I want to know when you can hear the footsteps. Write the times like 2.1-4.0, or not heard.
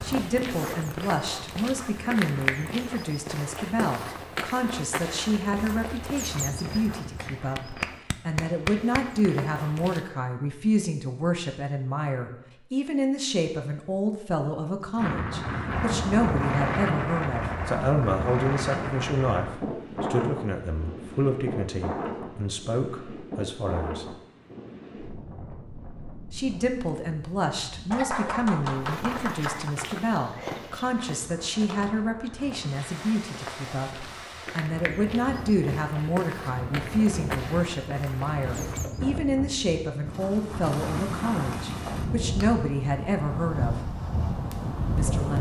0.0-10.1, 28.8-39.0.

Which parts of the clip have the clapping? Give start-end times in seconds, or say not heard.
7.5-9.2, 27.9-29.8.